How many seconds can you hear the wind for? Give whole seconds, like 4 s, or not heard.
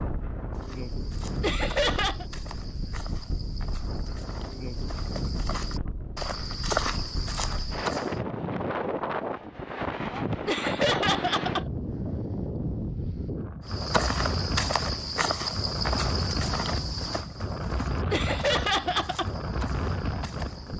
21 s.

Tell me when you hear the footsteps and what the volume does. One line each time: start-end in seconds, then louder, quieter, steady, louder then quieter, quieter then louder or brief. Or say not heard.
0.6-8.2 louder
13.7-20.7 quieter.